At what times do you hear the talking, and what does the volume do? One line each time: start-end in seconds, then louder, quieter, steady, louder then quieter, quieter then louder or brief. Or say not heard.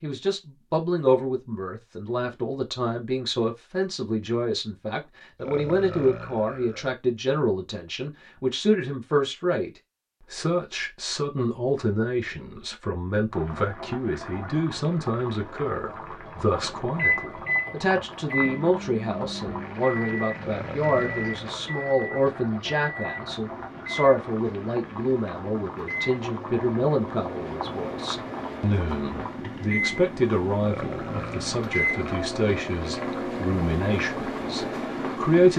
0.0-35.5 steady.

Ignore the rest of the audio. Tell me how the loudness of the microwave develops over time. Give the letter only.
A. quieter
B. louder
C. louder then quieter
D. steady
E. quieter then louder
E.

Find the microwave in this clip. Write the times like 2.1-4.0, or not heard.
16.6-35.5.